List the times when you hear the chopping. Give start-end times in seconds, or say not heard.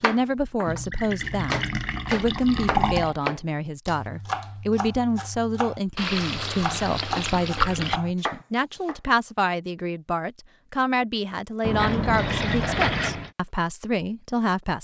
0.0-9.0.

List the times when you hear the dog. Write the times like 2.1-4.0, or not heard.
not heard.